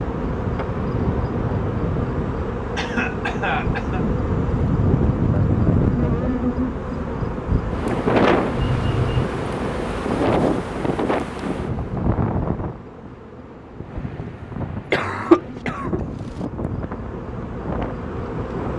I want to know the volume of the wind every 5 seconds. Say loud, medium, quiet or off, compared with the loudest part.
loud, loud, loud, medium.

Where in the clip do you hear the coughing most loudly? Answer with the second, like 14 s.
15 s.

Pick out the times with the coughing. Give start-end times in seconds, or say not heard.
2.8-4.0, 8.6-9.3, 14.9-16.0.